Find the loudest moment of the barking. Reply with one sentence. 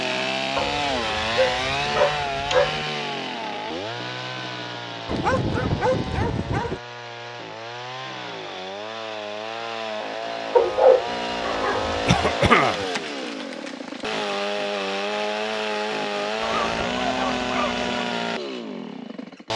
The loudest moment of the barking is at 11 seconds.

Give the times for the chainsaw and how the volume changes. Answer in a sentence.
The chainsaw can be heard from 0.0 to 19.5 s, getting quieter then louder.